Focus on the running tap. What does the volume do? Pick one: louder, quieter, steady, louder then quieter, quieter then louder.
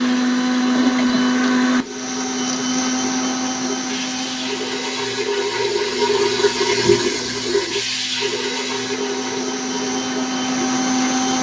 louder then quieter.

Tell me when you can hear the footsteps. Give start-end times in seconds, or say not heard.
not heard.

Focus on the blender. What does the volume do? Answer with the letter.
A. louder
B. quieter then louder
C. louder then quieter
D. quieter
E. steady
B.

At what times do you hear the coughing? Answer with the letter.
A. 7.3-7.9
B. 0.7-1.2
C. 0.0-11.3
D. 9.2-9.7
B.